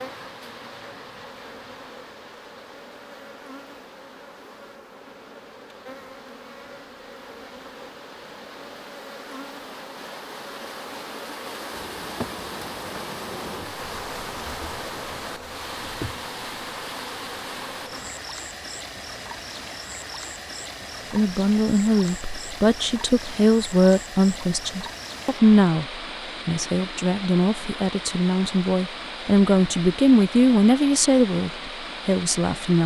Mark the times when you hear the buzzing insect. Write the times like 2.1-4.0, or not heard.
0.0-18.3.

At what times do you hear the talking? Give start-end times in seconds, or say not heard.
21.1-32.8.